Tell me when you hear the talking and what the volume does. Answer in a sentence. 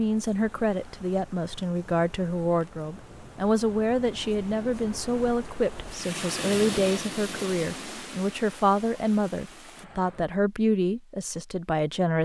The talking can be heard from 0.0 to 12.2 s, at a steady volume.